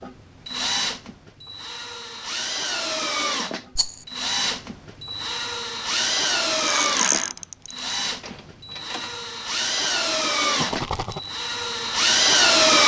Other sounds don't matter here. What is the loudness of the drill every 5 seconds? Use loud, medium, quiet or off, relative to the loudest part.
medium, medium, loud.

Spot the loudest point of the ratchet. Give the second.
7 s.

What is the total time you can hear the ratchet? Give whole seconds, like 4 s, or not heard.
3 s.